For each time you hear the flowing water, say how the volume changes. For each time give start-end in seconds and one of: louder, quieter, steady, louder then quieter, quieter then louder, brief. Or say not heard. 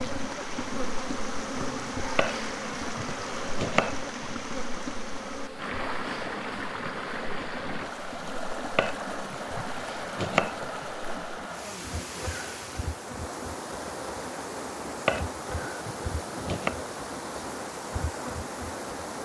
0.0-19.2 steady.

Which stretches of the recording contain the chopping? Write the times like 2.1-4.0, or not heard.
2.1-4.3, 8.8-10.8, 15.1-16.8.